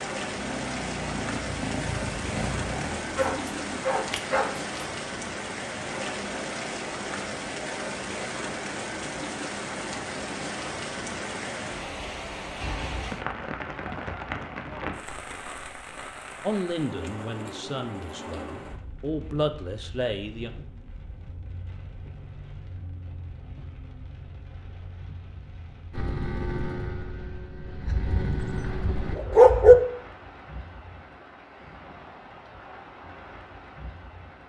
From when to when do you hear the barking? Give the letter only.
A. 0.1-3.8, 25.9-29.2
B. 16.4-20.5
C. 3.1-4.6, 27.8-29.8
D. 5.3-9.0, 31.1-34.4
C.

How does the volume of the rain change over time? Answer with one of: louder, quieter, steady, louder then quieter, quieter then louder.
quieter.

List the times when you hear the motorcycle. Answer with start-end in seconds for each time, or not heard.
0.1-3.8, 25.9-29.2.